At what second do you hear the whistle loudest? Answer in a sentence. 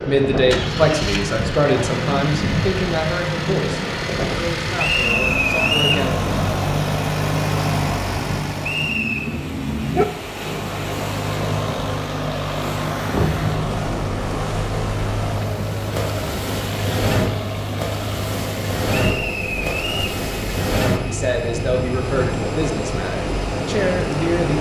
The loudest moment of the whistle is at 6 seconds.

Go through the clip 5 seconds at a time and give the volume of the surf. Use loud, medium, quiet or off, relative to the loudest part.
loud, medium, loud, loud, loud.